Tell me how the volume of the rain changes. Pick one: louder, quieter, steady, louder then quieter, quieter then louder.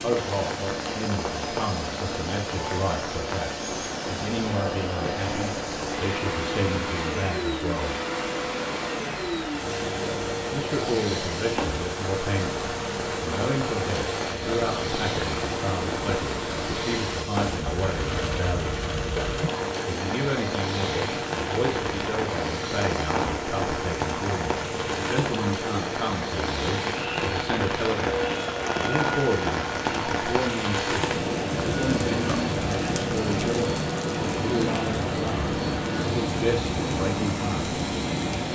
louder.